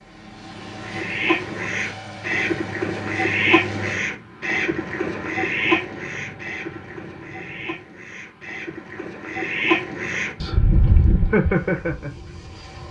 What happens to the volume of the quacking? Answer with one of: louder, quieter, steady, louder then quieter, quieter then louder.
quieter then louder.